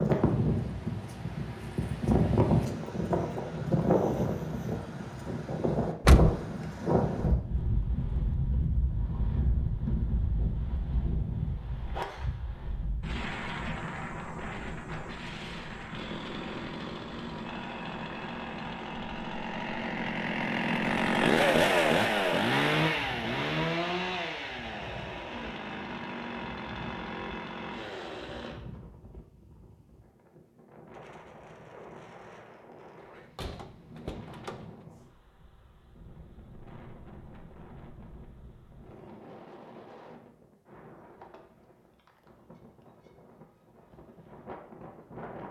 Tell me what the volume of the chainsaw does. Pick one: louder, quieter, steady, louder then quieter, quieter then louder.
louder then quieter.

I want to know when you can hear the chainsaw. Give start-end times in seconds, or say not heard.
15.9-28.6.